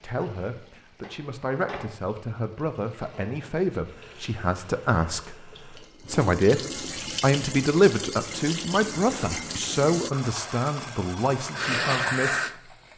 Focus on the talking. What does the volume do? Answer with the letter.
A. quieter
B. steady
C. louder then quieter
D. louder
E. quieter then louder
C.